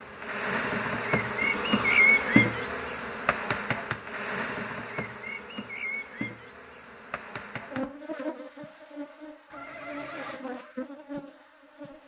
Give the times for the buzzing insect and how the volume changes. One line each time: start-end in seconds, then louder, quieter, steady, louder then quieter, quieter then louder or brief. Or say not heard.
0.0-12.0 quieter.